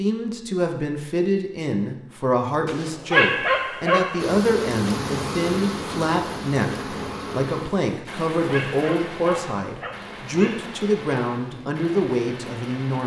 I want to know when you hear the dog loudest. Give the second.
3 s.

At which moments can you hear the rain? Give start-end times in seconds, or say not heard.
4.2-13.0.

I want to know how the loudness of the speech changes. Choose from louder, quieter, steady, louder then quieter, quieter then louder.
steady.